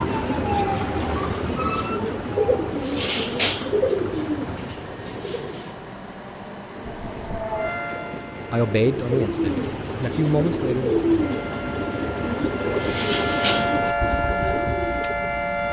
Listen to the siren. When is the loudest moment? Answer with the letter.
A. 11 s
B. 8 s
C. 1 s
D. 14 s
D.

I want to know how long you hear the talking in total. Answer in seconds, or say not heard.
3 s.